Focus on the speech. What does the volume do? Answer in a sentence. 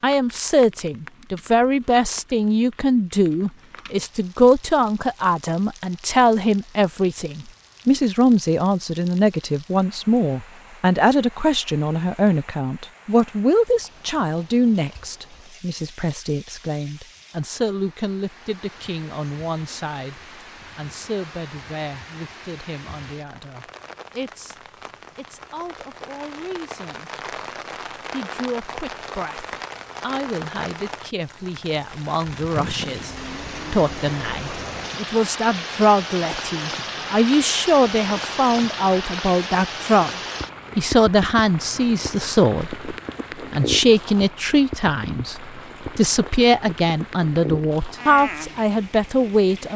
The loudness of the speech goes down, then up.